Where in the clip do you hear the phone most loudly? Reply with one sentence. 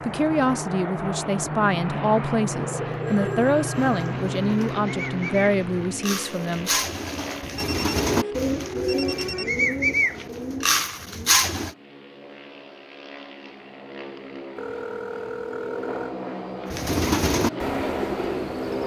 The volume of the phone peaks at 9 seconds.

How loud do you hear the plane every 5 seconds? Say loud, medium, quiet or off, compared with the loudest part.
loud, medium, quiet, loud.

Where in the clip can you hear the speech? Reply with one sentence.
The speech can be heard from 0.0 to 6.7 s.